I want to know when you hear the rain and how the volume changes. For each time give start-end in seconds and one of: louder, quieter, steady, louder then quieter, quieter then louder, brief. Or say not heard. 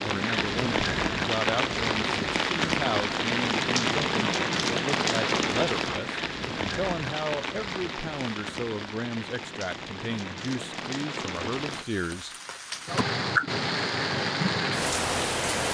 0.0-15.7 quieter then louder.